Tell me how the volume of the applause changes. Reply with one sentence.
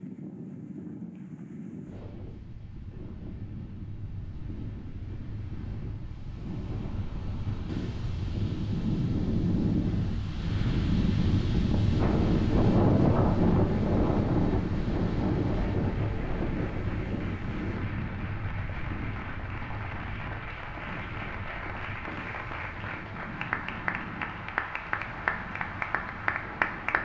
The volume of the applause goes up.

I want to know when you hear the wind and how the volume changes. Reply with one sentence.
You can hear the wind from 0.0 to 27.0 s, getting louder then quieter.